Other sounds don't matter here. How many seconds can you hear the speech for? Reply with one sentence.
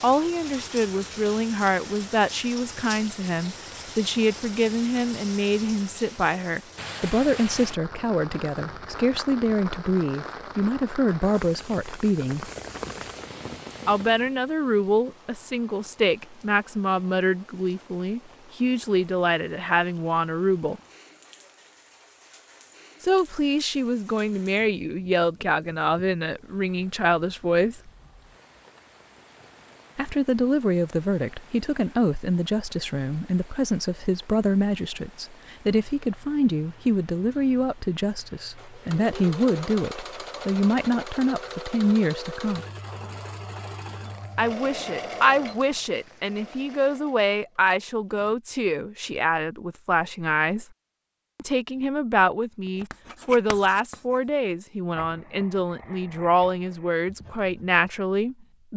You can hear the speech for 51 seconds altogether.